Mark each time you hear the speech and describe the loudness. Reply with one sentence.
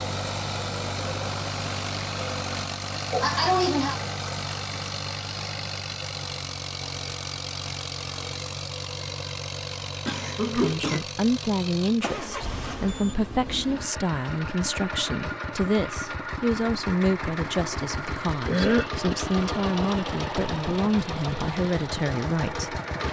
The speech can be heard from 10.5 to 22.8 s, at a steady volume.